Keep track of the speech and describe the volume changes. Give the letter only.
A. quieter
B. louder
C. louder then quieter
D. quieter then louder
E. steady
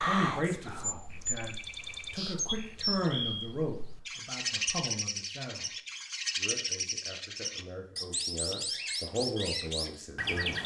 D.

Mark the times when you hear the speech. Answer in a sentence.
You can hear the speech from 0.0 to 5.7 s and from 6.3 to 10.6 s.